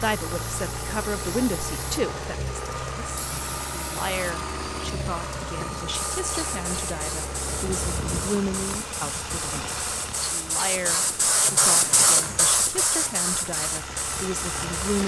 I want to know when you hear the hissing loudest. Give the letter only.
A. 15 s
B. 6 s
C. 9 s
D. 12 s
D.